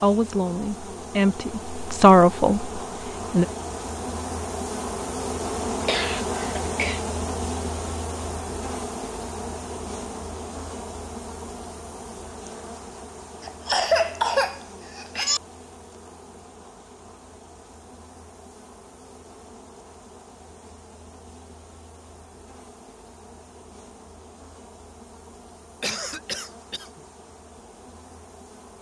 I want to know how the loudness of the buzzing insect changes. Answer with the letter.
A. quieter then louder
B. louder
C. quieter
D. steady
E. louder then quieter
C.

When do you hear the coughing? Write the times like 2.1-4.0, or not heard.
5.7-7.0, 13.4-15.4, 25.8-27.0.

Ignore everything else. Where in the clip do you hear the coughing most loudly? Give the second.
14 s.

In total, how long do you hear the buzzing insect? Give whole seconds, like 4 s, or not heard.
29 s.